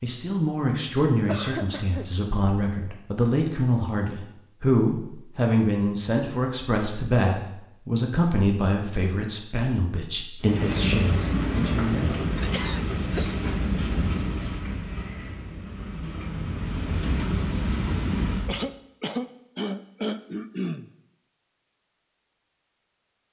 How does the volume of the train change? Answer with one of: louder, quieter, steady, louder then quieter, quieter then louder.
quieter then louder.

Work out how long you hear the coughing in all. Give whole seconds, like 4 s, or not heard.
4 s.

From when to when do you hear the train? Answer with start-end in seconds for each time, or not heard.
10.4-18.6.